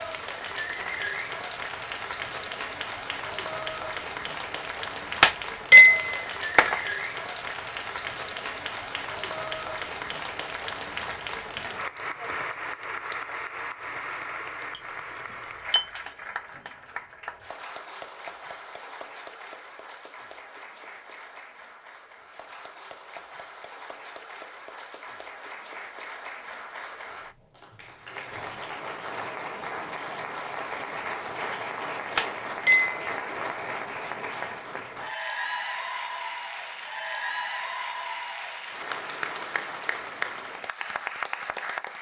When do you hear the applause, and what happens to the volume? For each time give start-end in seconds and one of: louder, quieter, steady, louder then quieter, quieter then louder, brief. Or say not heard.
0.0-41.9 quieter then louder.